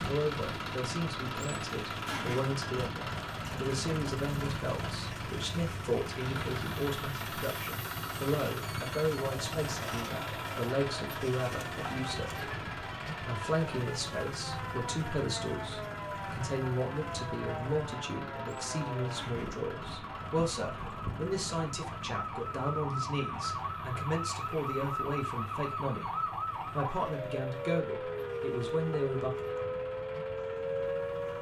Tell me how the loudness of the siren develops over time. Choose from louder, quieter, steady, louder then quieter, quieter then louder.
louder.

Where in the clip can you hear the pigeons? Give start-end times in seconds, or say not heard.
not heard.